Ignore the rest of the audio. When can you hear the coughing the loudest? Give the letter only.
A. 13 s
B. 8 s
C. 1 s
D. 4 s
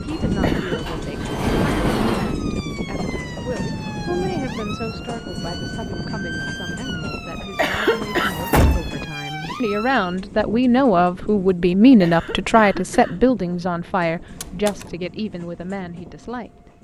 B.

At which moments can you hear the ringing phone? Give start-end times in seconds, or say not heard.
not heard.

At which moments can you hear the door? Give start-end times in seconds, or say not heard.
0.1-2.4, 7.9-8.9, 14.3-14.8.